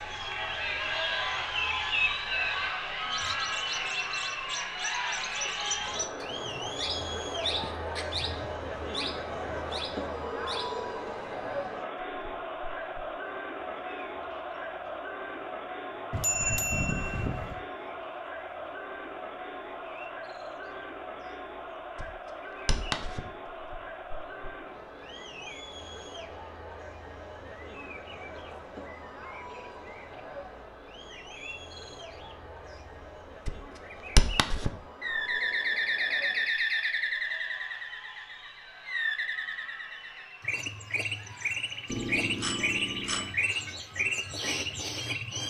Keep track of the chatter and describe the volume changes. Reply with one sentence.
The volume of the chatter goes down.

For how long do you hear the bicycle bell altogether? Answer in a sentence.
You can hear the bicycle bell for 3 seconds altogether.